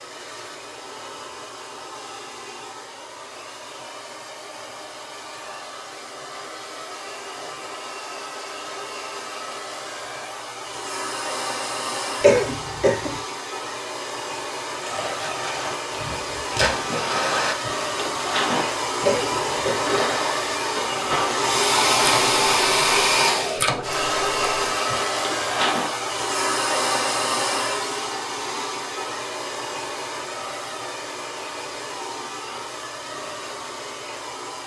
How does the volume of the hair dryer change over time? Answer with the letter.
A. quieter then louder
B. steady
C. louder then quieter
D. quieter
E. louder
C.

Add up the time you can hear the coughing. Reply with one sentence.
The coughing can be heard for 2 seconds in total.